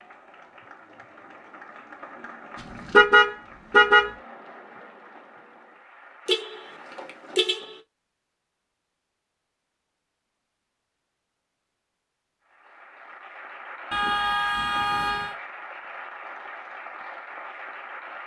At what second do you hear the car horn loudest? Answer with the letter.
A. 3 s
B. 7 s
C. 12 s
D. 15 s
A.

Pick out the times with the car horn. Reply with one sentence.
The car horn can be heard from 2.9 to 4.1 s, from 6.2 to 7.8 s and from 13.9 to 15.3 s.